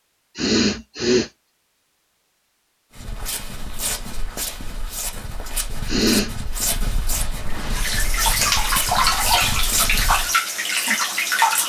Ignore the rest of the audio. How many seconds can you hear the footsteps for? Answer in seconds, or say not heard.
7 s.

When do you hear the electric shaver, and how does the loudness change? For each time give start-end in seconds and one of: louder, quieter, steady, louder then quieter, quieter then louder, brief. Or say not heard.
not heard.